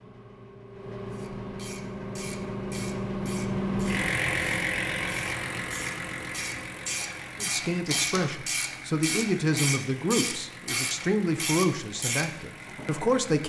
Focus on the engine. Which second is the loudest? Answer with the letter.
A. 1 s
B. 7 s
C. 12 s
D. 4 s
D.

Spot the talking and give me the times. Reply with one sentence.
The talking can be heard from 7.4 to 13.4 s.